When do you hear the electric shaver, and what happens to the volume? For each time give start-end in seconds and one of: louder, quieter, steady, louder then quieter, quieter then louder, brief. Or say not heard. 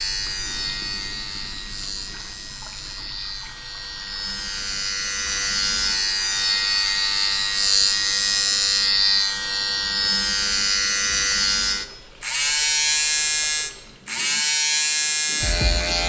0.0-16.0 louder.